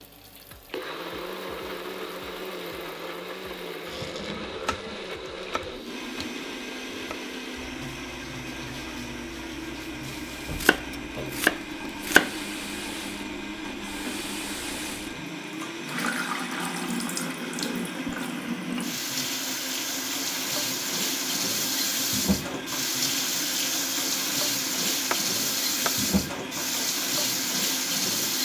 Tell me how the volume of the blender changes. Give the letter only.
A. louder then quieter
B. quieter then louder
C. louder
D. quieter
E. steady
E.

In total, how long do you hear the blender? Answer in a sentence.
You can hear the blender for 28 seconds altogether.